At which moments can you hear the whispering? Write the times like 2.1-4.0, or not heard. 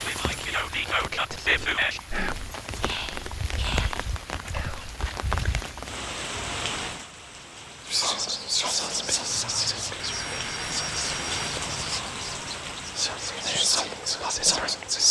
0.0-5.0, 7.8-15.0.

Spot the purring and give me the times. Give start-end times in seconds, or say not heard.
not heard.